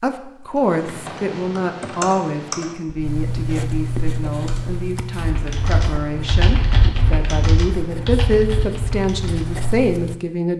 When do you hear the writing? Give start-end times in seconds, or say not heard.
3.0-10.2.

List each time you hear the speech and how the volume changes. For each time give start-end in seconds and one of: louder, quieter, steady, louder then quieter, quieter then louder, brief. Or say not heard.
0.0-10.5 quieter then louder.